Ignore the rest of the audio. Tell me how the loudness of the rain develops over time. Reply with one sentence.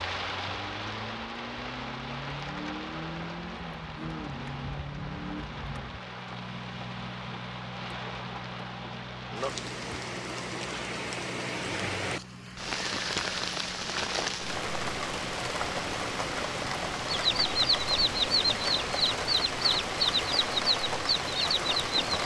The volume of the rain goes up.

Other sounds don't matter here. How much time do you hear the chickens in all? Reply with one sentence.
You can hear the chickens for 5 seconds altogether.